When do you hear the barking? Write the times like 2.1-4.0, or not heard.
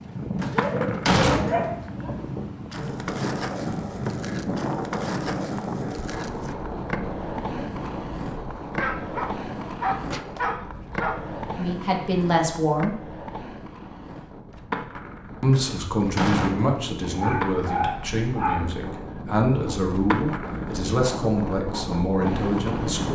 0.5-2.1, 8.8-11.2, 17.1-18.6.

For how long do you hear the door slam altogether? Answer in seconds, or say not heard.
3 s.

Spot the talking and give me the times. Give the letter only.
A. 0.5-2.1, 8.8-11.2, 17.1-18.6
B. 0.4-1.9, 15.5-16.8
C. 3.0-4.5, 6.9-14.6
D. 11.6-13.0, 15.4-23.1
D.